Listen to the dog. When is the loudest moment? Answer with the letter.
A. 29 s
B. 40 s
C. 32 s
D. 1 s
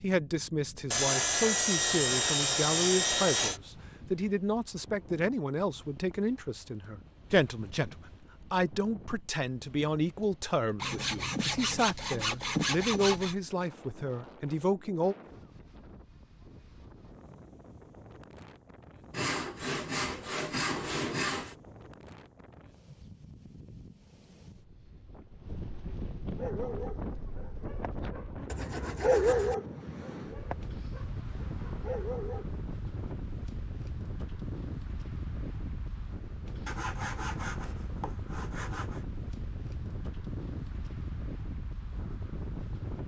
A.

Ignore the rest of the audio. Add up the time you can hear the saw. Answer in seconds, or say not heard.
11 s.